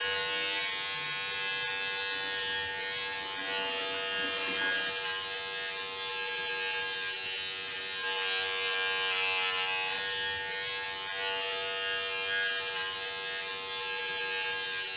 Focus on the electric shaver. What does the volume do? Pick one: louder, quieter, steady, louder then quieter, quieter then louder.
steady.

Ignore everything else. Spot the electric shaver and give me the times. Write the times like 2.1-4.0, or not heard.
0.0-14.9.